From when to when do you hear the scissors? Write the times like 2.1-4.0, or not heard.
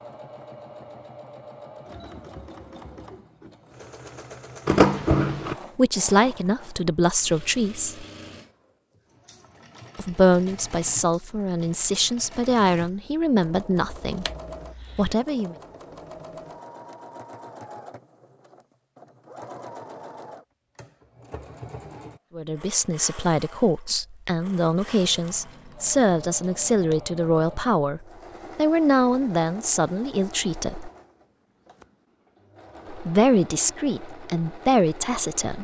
4.7-5.5, 14.0-15.2, 25.0-27.0.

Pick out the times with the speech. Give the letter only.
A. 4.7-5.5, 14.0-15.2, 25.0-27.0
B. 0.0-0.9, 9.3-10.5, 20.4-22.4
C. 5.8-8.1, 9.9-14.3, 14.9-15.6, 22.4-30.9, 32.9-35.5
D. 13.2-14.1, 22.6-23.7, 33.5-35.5
C.